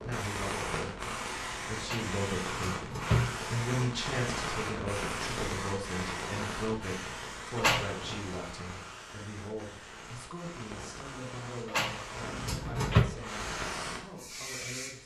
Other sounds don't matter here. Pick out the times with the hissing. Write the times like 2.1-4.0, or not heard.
0.0-15.0.